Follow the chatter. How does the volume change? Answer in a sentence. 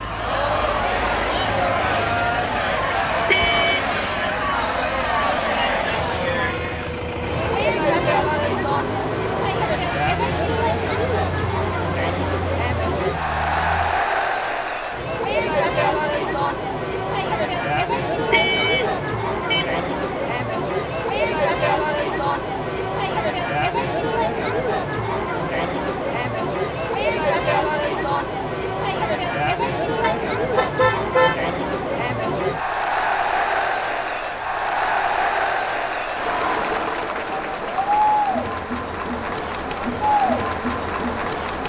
The loudness of the chatter stays about the same.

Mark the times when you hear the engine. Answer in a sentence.
The engine can be heard from 0.0 to 14.0 s.